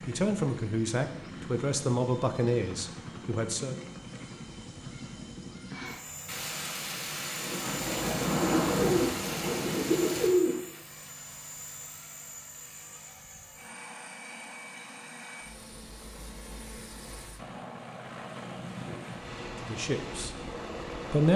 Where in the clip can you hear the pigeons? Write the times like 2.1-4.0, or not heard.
8.0-10.6.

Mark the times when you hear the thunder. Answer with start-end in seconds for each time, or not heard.
6.2-10.3.